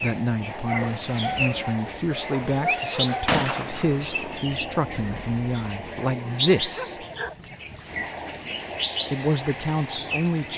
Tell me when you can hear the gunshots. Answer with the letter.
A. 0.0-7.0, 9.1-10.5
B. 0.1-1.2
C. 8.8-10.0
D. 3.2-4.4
D.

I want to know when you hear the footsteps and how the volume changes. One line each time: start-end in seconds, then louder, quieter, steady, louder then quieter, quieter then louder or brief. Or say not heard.
not heard.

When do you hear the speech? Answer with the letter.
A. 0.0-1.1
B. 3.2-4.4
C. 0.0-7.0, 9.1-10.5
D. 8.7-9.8
C.